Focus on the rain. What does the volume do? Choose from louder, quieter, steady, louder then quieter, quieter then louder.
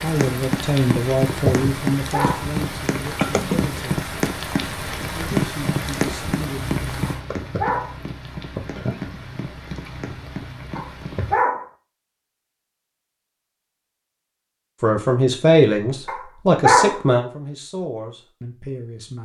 quieter.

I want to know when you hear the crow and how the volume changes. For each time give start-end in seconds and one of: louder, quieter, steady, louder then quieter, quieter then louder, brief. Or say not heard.
not heard.